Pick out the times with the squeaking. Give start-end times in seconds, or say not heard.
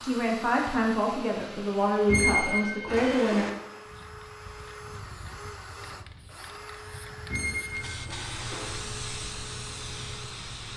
2.0-3.5, 7.3-8.7.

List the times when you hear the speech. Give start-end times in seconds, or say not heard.
0.1-3.5.